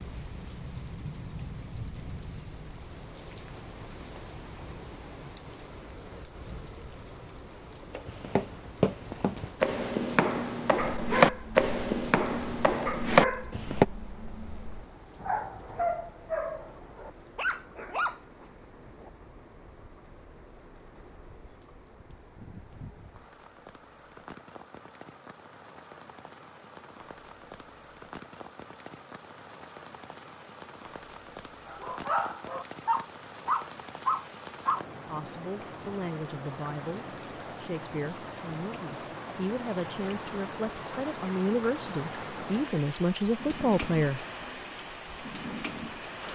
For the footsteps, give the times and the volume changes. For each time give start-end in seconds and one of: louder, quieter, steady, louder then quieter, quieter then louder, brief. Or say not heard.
8.1-13.8 louder.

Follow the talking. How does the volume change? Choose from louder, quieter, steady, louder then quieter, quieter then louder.
louder.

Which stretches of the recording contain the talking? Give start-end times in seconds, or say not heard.
35.0-44.2.